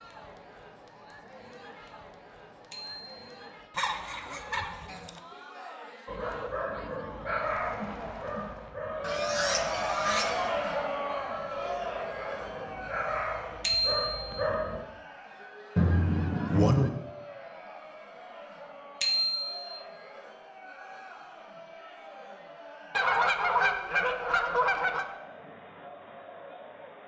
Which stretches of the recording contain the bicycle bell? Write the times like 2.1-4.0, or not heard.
2.7-3.2, 13.6-14.3, 19.0-19.7.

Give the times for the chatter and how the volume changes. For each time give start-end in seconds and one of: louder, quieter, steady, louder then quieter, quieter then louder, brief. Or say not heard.
0.0-27.0 louder then quieter.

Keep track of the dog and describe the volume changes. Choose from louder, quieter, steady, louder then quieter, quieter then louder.
quieter then louder.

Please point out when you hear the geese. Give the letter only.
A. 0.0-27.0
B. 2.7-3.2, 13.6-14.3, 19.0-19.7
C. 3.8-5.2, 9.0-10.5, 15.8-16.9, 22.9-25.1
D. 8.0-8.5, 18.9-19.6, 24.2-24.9
C.